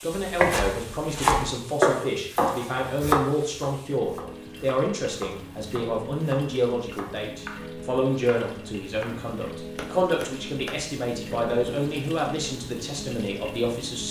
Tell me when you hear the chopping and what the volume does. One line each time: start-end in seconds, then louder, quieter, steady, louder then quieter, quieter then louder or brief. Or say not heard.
0.1-10.8 quieter.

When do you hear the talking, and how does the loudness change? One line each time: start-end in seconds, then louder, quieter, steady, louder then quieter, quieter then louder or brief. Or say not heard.
0.0-14.0 steady.